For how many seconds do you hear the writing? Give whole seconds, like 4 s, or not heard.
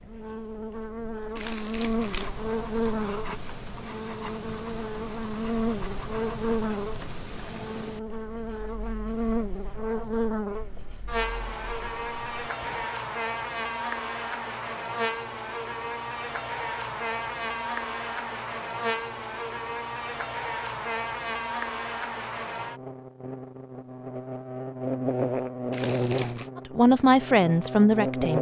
11 s.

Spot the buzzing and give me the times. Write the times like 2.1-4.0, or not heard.
0.0-28.3.